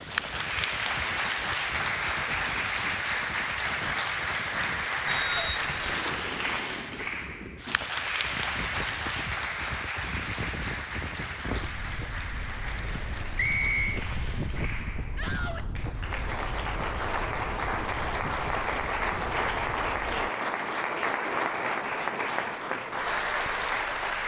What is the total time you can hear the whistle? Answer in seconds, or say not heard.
2 s.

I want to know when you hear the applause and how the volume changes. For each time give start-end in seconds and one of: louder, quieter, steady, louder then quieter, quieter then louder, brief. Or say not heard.
0.0-24.2 quieter then louder.